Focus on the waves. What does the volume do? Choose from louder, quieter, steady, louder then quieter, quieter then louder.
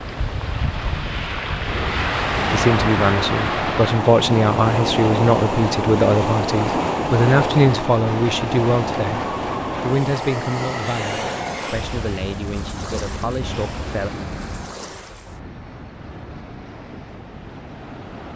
quieter.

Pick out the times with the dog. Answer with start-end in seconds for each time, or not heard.
not heard.